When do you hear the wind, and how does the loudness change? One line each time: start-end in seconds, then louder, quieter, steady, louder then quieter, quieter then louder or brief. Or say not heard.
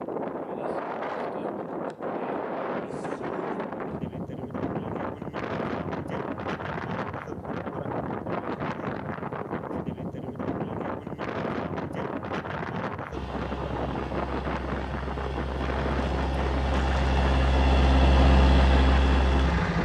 0.0-19.8 steady.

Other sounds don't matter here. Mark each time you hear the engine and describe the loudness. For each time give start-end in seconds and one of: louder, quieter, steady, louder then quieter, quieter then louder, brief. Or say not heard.
13.1-19.8 louder.